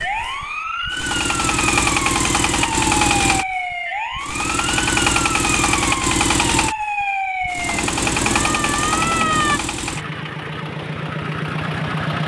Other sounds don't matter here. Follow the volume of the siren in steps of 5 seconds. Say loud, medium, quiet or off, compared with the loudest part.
loud, loud, off.